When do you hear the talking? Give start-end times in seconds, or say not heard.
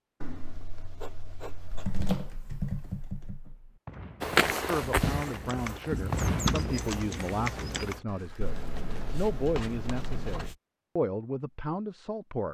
4.7-12.4.